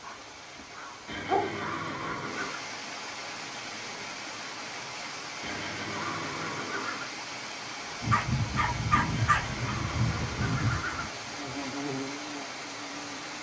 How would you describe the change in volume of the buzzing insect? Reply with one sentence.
The volume of the buzzing insect goes down.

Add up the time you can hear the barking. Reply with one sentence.
The barking can be heard for 4 seconds in total.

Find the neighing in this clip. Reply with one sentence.
The neighing can be heard from 1.1 to 2.6 s, from 5.4 to 7.2 s and from 9.1 to 11.2 s.